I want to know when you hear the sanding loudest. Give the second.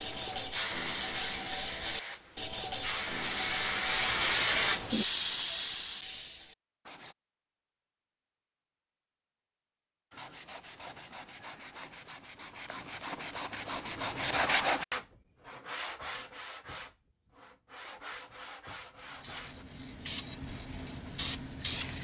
15 s.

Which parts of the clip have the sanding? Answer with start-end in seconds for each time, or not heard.
0.0-7.2, 10.1-19.6.